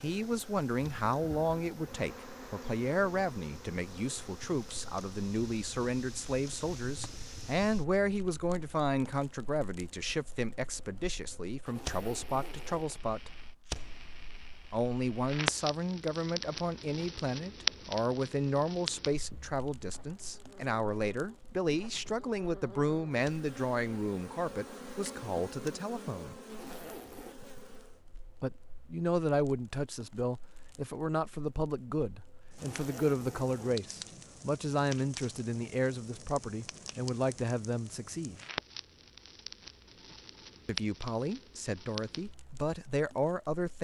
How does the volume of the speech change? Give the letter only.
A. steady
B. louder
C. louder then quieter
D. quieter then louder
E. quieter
A.